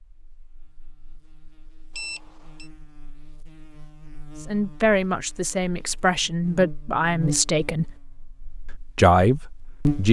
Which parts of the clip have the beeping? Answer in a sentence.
You can hear the beeping from 1.9 to 2.7 s.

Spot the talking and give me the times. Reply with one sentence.
You can hear the talking from 4.5 to 8.0 s and from 8.9 to 10.0 s.